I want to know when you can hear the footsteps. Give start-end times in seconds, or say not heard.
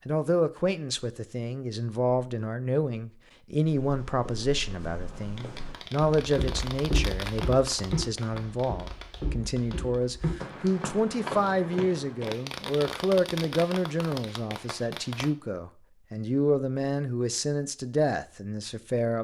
3.6-12.3.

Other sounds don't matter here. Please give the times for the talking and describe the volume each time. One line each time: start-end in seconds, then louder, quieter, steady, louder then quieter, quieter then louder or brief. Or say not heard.
0.1-19.2 steady.